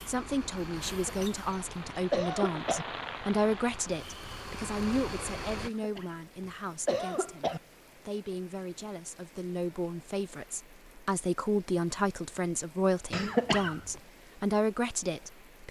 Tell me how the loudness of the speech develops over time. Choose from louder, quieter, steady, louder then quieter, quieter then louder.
quieter then louder.